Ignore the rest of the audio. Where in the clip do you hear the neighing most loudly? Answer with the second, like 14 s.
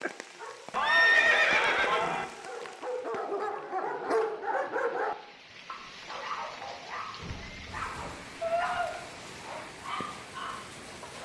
1 s.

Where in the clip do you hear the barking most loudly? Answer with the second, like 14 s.
4 s.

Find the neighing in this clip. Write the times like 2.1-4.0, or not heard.
0.7-2.2, 7.2-9.1.